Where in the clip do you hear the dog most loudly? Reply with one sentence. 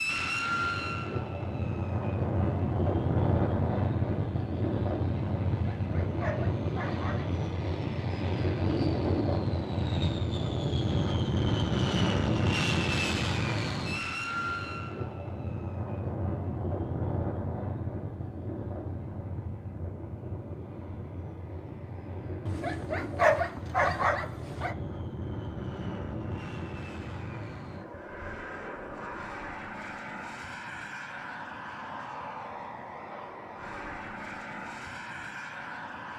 The volume of the dog peaks at 23 seconds.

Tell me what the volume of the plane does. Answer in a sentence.
The volume of the plane goes down.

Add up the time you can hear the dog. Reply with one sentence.
You can hear the dog for 4 seconds altogether.